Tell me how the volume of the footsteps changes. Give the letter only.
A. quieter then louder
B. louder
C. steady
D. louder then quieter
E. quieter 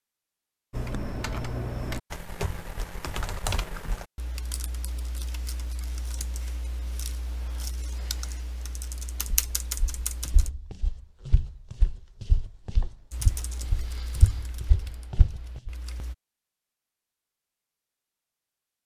B.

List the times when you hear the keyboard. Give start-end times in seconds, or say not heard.
0.7-10.5, 13.1-16.1.